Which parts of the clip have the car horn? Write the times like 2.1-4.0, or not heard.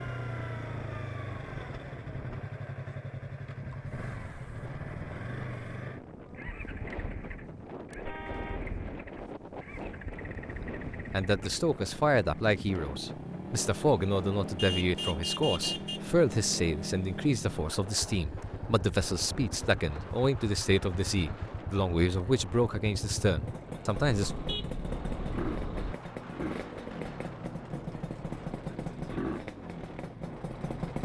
8.1-8.7, 14.6-16.0, 23.9-25.9.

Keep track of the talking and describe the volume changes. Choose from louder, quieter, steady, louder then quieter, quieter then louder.
steady.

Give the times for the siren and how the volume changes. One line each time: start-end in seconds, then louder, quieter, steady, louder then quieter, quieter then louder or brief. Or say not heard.
not heard.